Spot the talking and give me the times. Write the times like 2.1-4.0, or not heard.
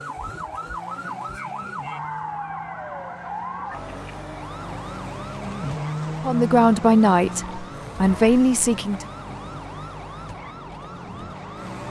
6.2-9.1.